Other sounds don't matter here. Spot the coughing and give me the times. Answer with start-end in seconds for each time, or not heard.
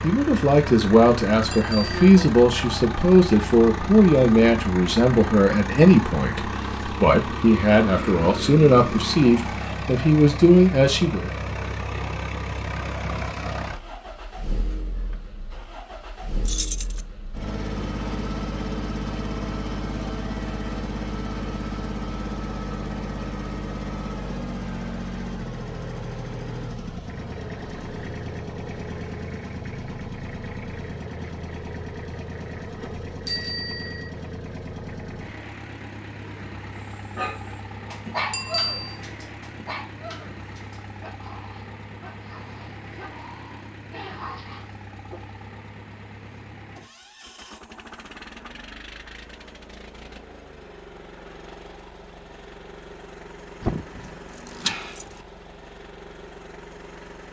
not heard.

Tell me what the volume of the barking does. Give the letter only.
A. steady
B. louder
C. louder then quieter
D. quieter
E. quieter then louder
E.